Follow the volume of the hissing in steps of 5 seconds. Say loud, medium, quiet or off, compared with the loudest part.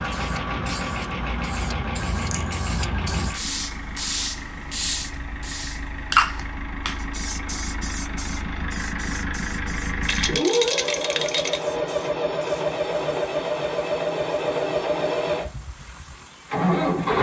loud, loud, quiet, quiet.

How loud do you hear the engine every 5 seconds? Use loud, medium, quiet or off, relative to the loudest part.
medium, medium, loud, loud.